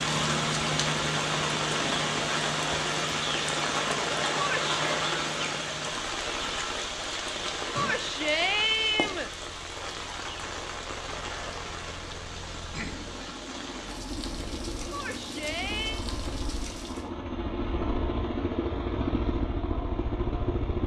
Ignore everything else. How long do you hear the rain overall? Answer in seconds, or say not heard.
17 s.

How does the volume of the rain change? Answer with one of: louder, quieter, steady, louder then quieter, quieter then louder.
quieter.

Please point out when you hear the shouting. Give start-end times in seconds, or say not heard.
4.3-4.8, 7.8-9.3, 14.9-16.1.